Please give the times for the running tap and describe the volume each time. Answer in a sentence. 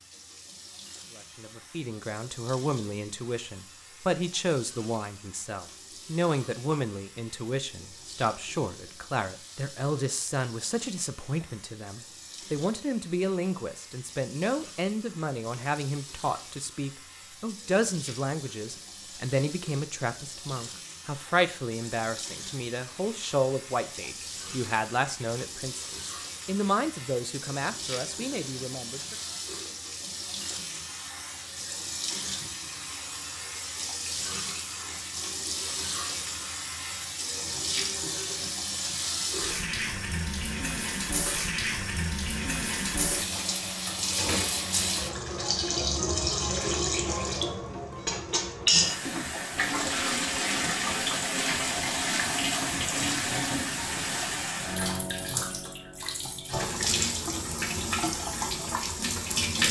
You can hear the running tap from 0.0 to 59.6 s, getting louder.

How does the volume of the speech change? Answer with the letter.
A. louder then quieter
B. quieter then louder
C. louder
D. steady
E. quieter
D.